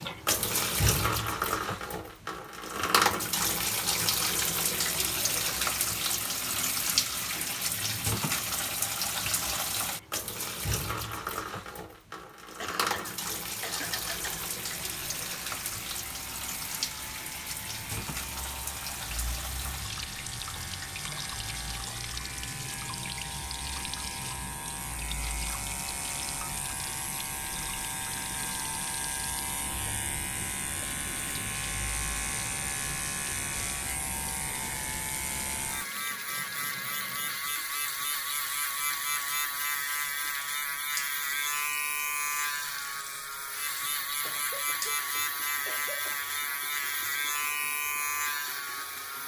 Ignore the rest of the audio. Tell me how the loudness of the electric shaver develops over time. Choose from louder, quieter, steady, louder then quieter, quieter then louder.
louder.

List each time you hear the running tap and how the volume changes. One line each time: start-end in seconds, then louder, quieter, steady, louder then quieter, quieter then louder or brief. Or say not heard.
0.0-49.2 quieter.